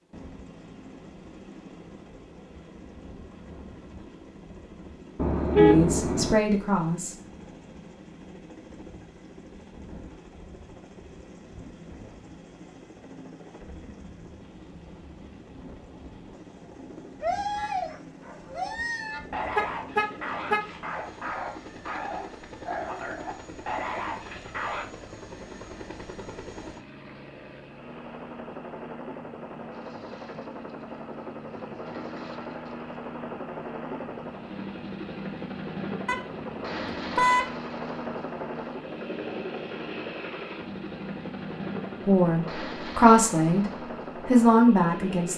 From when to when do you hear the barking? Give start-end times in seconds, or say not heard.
17.2-24.9.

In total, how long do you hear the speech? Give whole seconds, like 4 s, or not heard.
4 s.